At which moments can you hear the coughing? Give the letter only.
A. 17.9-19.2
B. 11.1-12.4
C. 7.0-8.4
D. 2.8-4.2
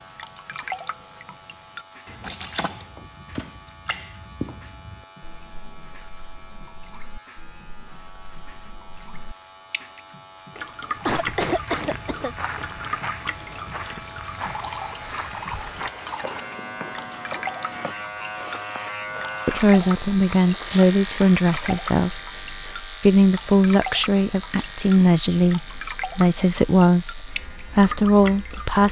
B.